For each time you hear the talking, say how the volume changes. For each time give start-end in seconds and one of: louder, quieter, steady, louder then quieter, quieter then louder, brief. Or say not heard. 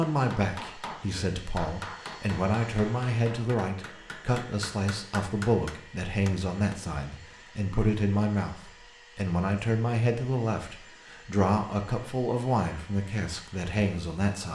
0.0-14.4 steady.